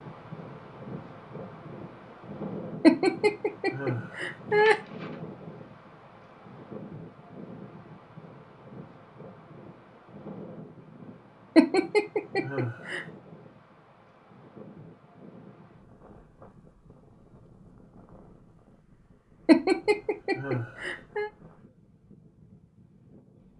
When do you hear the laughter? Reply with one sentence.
You can hear the laughter from 2.8 to 4.8 s, from 11.6 to 13.1 s and from 19.4 to 21.3 s.